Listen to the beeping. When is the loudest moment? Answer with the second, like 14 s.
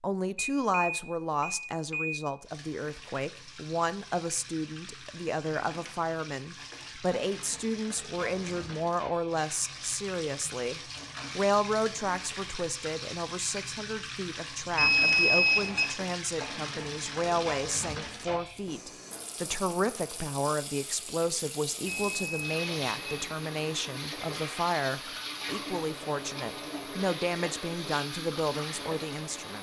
15 s.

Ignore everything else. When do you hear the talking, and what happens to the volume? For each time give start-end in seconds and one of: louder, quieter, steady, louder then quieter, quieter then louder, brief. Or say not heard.
0.0-29.5 steady.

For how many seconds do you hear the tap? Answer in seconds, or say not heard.
27 s.